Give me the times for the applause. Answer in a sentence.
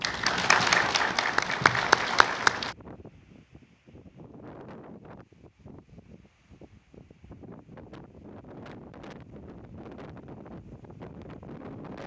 The applause can be heard from 0.0 to 2.8 s.